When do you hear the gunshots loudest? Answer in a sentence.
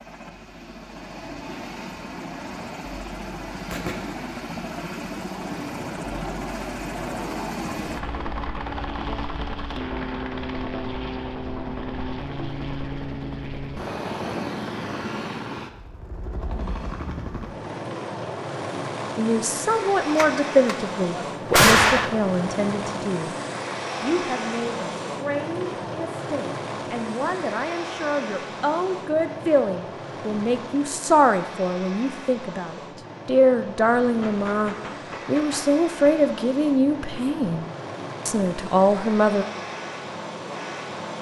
The loudest moment of the gunshots is at 22 seconds.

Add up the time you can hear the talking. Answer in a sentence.
You can hear the talking for 19 seconds altogether.